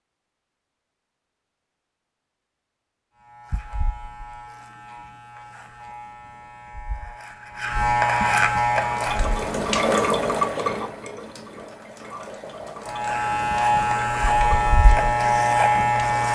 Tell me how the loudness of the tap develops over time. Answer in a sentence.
The loudness of the tap goes down.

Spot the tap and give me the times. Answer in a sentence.
You can hear the tap from 8.7 to 16.2 s.